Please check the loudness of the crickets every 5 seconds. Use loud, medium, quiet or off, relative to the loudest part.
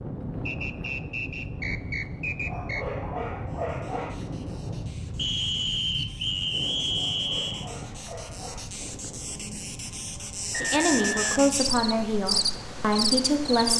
quiet, quiet, loud.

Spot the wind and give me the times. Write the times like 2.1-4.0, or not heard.
0.0-13.7.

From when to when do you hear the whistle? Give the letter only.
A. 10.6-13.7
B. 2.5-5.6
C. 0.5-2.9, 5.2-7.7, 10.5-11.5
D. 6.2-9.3
C.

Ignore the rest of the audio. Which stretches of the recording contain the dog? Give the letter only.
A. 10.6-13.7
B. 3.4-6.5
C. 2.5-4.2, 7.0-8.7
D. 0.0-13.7
C.